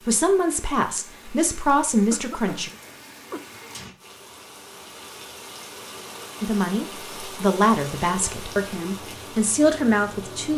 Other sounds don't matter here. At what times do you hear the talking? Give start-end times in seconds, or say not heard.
0.0-2.7, 6.4-10.5.